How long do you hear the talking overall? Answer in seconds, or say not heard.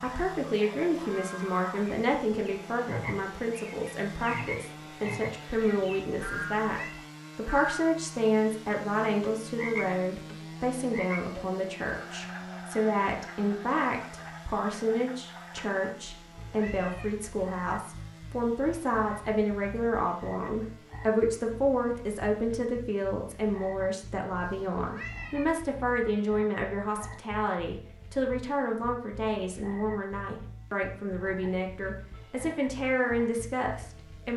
34 s.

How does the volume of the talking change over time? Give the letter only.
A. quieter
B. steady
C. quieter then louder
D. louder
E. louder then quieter
B.